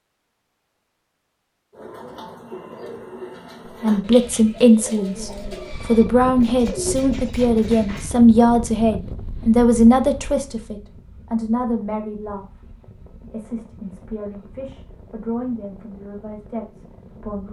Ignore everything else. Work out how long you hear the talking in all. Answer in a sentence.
The talking can be heard for 13 seconds in total.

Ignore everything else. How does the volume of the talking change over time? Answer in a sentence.
The loudness of the talking goes down.